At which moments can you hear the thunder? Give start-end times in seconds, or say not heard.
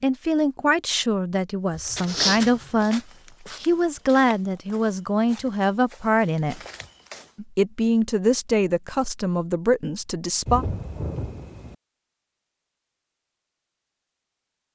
10.4-11.8.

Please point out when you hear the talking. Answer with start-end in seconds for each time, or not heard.
0.0-3.0, 3.6-6.6, 7.3-10.7.